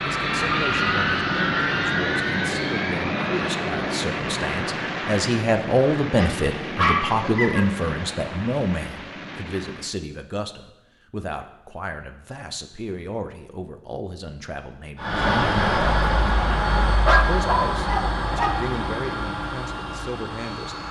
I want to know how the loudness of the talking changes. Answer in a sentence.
The volume of the talking goes up, then down.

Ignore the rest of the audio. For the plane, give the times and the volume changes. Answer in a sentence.
You can hear the plane from 0.0 to 10.0 s, getting quieter; and from 14.9 to 20.8 s, getting quieter.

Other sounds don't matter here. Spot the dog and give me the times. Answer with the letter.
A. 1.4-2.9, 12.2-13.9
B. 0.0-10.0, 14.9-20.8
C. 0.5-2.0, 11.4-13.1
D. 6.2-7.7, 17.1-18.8
D.